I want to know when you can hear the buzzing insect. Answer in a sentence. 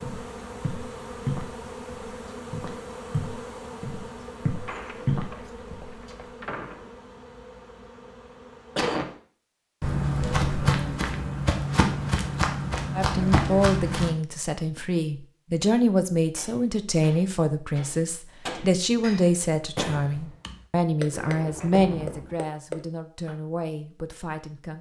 You can hear the buzzing insect from 0.0 to 9.2 s.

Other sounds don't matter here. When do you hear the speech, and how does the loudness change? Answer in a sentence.
The speech can be heard from 12.9 to 24.7 s, getting quieter.